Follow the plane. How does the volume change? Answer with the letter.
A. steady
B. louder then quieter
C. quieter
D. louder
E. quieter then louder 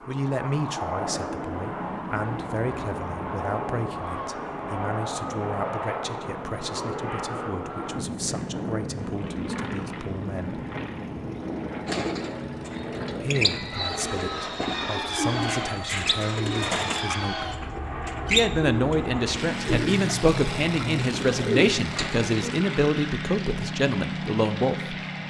A.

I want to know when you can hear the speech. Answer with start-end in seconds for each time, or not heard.
0.1-10.6, 13.2-25.0.